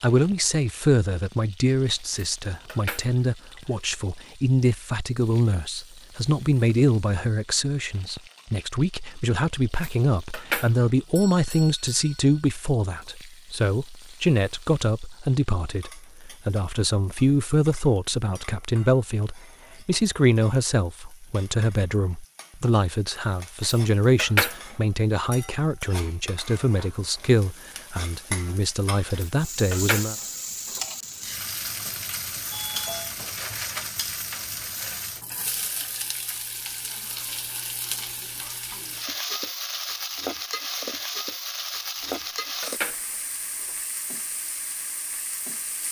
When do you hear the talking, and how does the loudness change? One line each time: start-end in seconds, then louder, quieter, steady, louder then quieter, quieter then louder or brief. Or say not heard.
0.0-30.1 steady.